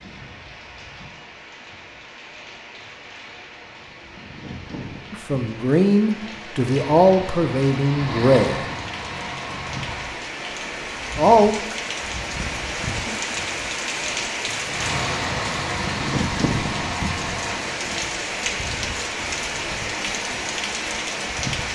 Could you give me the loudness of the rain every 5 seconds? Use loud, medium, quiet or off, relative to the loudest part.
quiet, medium, loud, loud, loud.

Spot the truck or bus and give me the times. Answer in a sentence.
You can hear the truck or bus from 6.6 to 10.2 s and from 14.7 to 17.8 s.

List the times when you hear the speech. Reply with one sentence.
You can hear the speech from 5.1 to 8.6 s and from 11.2 to 11.8 s.